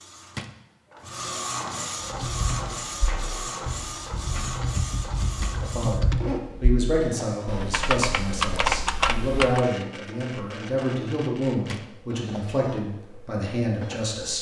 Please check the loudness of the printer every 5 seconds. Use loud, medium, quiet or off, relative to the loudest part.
loud, loud, medium.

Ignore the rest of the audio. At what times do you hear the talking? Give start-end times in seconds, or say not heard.
5.5-14.3.